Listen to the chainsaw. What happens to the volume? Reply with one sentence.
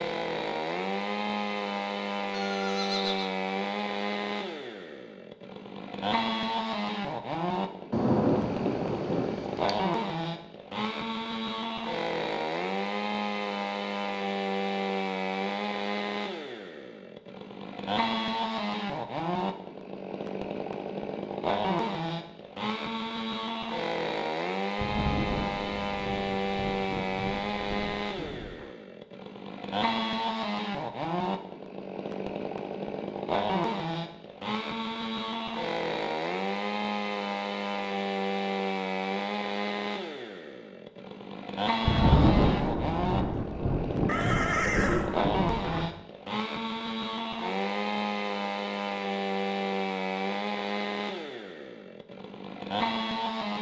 The volume of the chainsaw stays about the same.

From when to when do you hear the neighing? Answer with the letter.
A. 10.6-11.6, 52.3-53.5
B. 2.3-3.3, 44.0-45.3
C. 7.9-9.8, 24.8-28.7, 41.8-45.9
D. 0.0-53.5
B.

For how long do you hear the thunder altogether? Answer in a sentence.
You can hear the thunder for 10 seconds altogether.